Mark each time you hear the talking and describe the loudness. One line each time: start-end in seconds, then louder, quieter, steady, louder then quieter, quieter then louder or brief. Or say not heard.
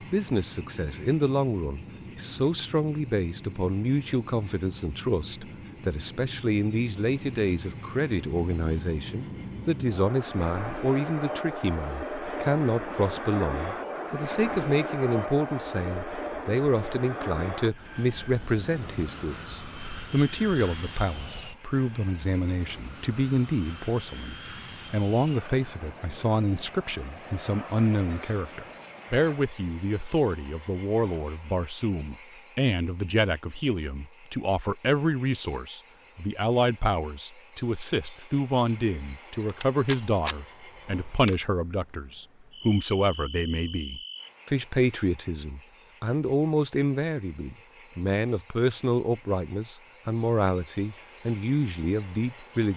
0.1-52.7 steady.